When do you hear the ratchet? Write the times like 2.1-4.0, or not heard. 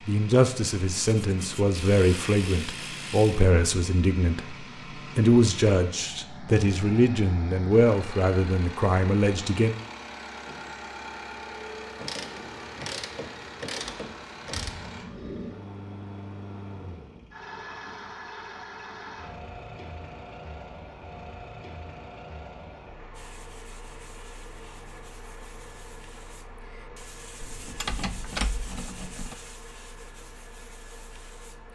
1.8-3.5, 11.9-14.9, 27.4-29.4.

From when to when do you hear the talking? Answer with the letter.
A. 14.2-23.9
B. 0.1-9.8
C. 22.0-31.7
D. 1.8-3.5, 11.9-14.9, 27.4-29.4
B.